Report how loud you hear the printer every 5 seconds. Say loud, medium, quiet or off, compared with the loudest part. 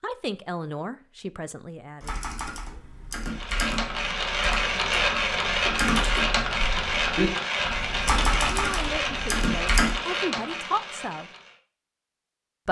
loud, loud, medium.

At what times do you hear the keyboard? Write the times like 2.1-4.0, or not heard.
2.0-9.9.